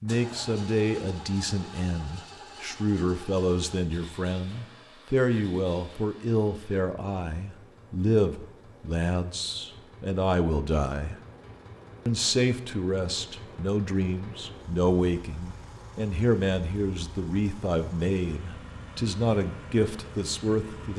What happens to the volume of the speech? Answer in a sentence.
The loudness of the speech stays about the same.